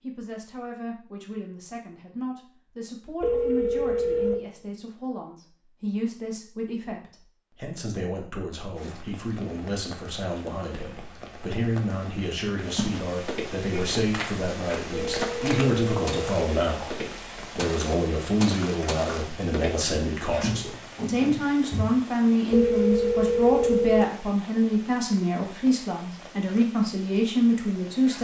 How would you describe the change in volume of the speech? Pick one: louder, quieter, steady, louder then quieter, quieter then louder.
louder.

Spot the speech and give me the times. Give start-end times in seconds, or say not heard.
0.0-28.1.